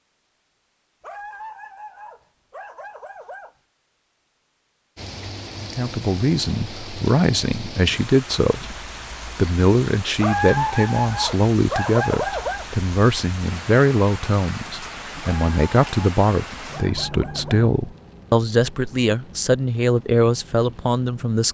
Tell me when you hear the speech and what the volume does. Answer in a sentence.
You can hear the speech from 5.6 to 21.4 s, at a steady volume.